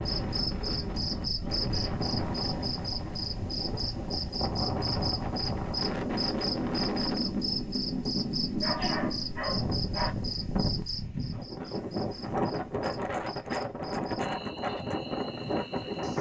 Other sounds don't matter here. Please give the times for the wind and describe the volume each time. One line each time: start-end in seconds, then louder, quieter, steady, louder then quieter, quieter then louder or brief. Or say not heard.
0.0-16.1 steady.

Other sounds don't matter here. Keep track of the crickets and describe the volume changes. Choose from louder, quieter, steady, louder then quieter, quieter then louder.
quieter.